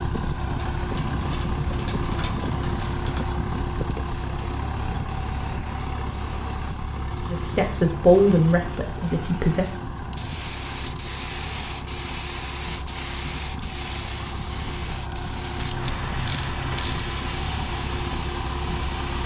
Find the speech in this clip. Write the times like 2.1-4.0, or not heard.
7.2-9.7.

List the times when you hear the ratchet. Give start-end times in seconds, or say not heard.
0.8-3.4, 15.6-17.1.